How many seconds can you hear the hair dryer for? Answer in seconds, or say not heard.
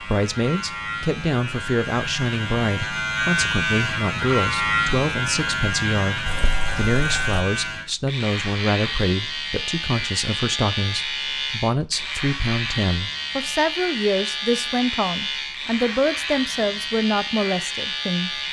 not heard.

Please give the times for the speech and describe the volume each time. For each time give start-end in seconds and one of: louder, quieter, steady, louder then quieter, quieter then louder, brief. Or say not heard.
0.0-18.4 steady.